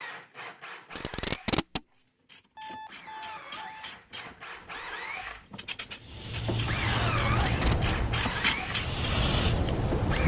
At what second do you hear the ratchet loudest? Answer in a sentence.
The loudest moment of the ratchet is at 9 seconds.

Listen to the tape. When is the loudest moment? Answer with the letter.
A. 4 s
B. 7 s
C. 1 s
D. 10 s
C.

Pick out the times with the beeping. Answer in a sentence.
You can hear the beeping from 2.5 to 3.9 s.